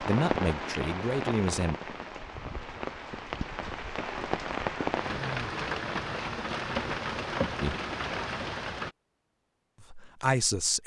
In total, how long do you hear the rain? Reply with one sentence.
The rain can be heard for 9 seconds in total.